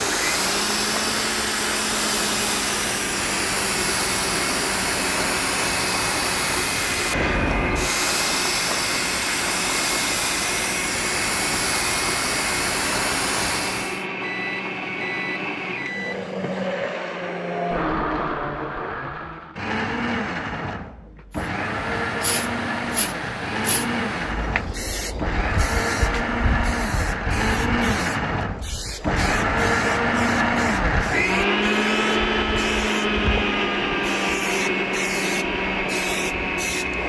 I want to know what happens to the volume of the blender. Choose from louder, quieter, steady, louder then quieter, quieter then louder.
louder.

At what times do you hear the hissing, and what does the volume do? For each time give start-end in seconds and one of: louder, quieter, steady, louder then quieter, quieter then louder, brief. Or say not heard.
0.0-14.1 steady
21.4-37.0 steady.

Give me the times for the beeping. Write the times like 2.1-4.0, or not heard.
14.2-16.6.